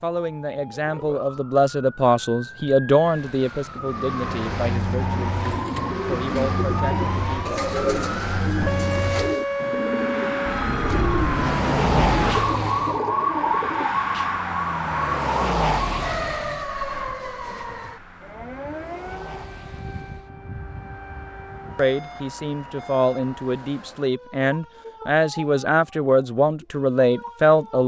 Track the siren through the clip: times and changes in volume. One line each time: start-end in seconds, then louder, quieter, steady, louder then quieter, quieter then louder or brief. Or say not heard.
0.1-27.8 louder then quieter.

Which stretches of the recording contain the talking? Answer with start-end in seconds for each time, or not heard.
0.0-7.5, 21.8-27.8.